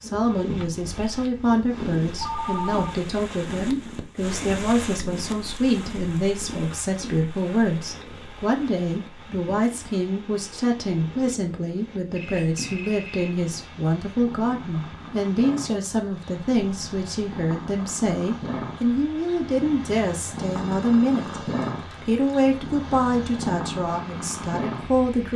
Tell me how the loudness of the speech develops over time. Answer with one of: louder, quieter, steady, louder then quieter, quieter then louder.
steady.